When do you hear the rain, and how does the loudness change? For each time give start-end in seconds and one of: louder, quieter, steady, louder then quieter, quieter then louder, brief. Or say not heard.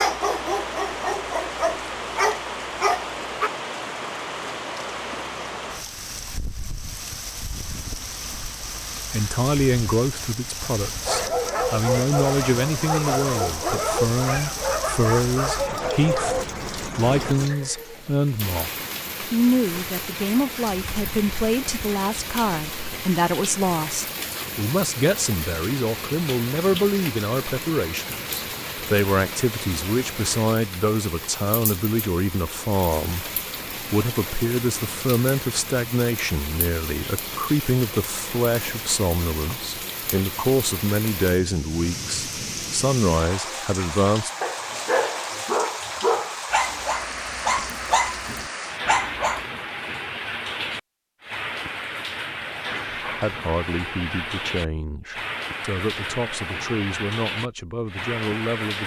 0.0-58.8 steady.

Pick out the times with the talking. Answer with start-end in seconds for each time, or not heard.
9.1-44.3, 53.1-58.8.